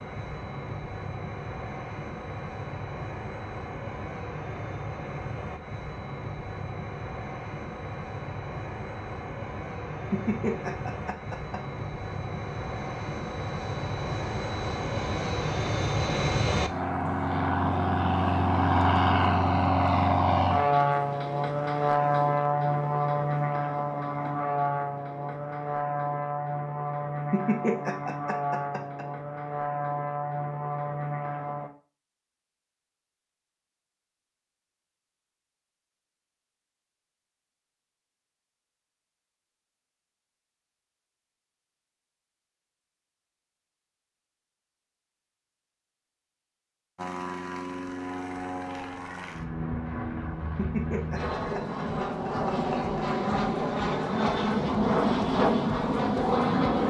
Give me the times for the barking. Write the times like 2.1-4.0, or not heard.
not heard.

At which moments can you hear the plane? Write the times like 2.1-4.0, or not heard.
0.0-31.7, 47.0-56.8.